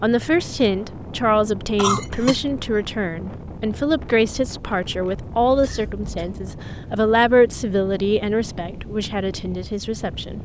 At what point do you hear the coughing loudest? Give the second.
2 s.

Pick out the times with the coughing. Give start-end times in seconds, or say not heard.
1.8-2.4, 5.5-6.3.